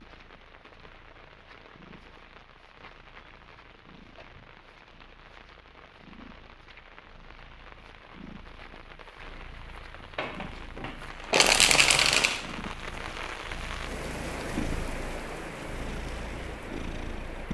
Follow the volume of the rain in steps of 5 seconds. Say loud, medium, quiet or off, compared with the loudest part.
quiet, medium, loud, loud.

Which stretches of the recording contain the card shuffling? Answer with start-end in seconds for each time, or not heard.
10.2-12.5.